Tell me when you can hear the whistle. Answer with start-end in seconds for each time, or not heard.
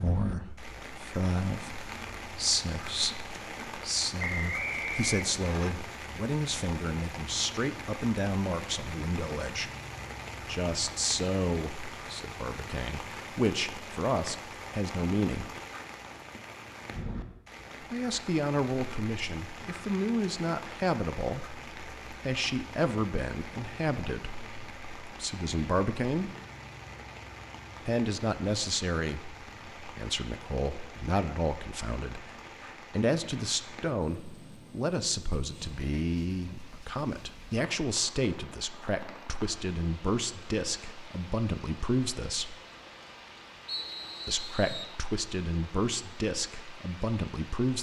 4.2-5.7, 43.6-45.0.